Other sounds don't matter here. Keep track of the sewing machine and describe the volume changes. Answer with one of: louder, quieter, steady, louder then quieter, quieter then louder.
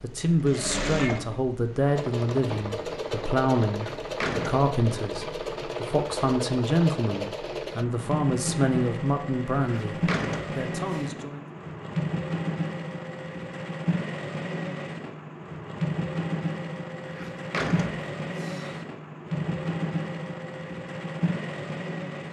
steady.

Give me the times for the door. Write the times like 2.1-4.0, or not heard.
3.7-4.7, 9.6-11.1, 17.1-18.9.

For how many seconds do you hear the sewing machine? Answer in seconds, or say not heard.
22 s.